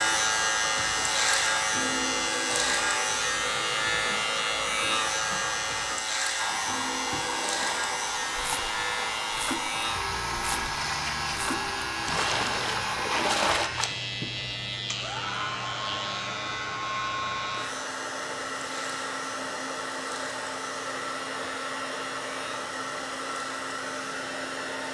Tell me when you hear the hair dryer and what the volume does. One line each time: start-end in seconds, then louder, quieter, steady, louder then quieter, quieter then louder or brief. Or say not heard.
0.0-24.8 steady.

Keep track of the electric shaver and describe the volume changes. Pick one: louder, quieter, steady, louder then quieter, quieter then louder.
quieter.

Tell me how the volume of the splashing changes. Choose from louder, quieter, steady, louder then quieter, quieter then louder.
louder.